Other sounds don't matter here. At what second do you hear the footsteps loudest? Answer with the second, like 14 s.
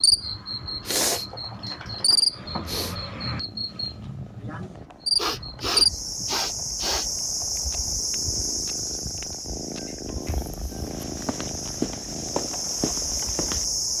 12 s.